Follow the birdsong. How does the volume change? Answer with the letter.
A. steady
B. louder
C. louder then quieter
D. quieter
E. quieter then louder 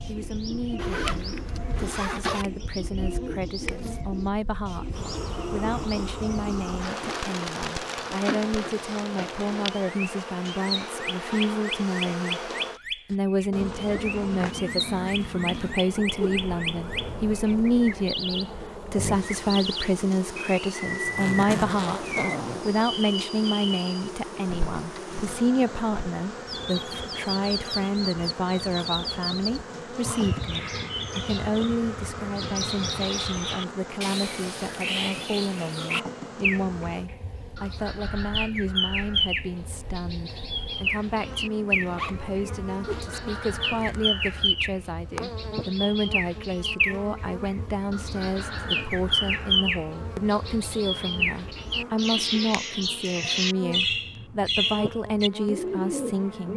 B.